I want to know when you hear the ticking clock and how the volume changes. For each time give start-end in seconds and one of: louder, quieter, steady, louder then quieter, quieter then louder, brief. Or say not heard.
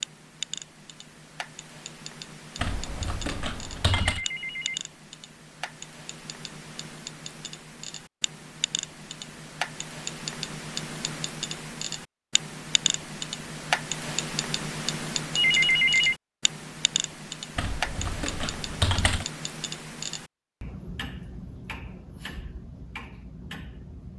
0.0-24.1 louder then quieter.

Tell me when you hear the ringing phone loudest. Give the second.
16 s.